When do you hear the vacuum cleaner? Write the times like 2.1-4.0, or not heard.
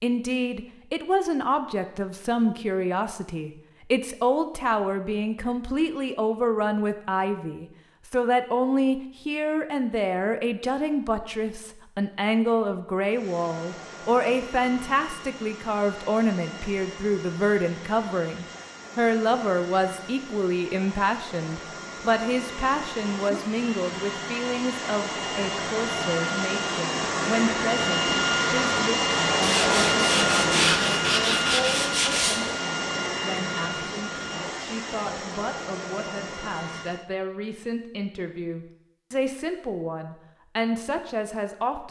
13.1-37.1.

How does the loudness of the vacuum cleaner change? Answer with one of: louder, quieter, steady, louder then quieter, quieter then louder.
louder then quieter.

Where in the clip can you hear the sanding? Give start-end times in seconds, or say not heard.
29.4-32.4.